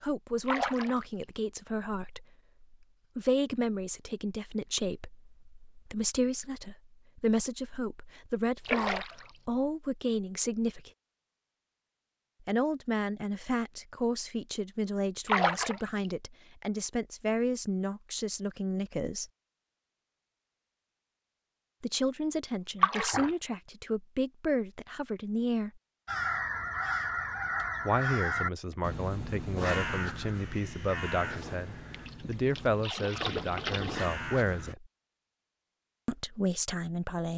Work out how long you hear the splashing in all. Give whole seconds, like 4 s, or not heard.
5 s.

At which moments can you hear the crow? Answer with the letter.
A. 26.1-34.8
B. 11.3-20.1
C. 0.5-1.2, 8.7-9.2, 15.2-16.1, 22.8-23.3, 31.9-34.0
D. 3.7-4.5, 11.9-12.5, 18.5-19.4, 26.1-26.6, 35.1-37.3
A.